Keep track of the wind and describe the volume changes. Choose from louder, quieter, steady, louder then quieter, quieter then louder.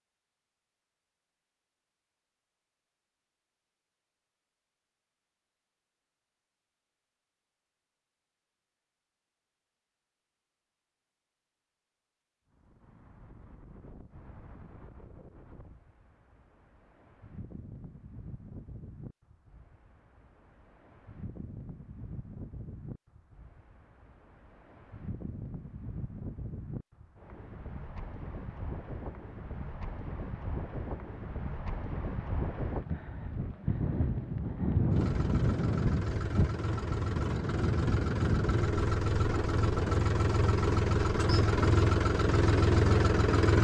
louder.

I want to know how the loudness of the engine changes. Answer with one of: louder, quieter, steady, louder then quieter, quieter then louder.
louder.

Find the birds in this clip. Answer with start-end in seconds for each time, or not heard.
not heard.